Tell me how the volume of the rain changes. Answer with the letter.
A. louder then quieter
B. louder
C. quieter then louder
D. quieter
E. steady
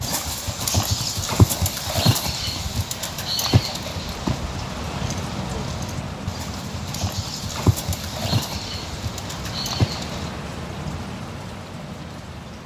B.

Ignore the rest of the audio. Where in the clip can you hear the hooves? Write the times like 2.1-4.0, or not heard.
0.0-10.3.